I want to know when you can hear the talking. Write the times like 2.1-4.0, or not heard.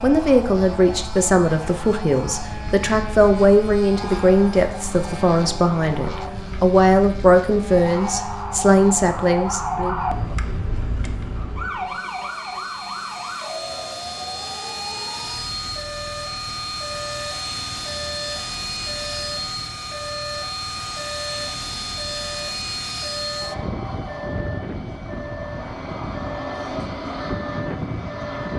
0.0-9.9.